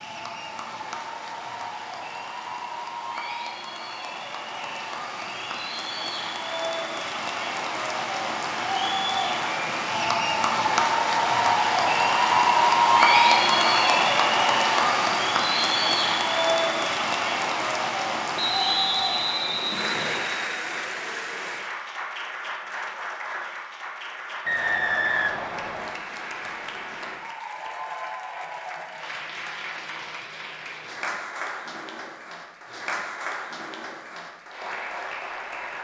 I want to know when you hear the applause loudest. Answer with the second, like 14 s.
13 s.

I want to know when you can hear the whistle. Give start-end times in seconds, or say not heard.
4.5-5.8, 18.4-20.3, 24.4-25.9.